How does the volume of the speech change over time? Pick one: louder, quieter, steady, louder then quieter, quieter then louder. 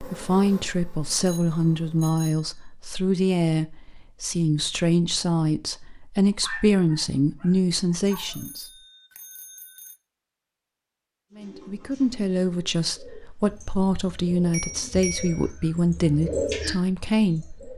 steady.